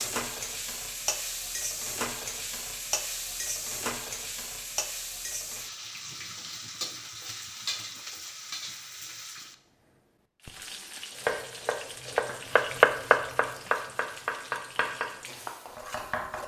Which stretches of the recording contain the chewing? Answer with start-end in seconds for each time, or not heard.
not heard.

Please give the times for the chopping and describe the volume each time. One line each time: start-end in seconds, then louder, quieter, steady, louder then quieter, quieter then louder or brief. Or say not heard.
11.1-16.4 louder then quieter.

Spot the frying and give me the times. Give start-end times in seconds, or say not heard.
0.0-16.4.